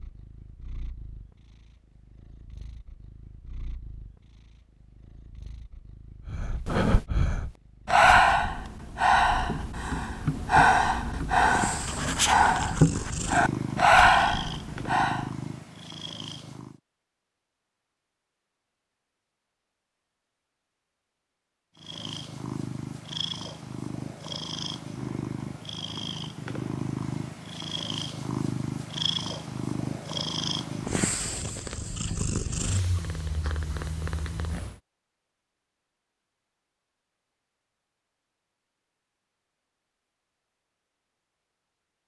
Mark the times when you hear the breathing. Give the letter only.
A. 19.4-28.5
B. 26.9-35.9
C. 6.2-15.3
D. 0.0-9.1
C.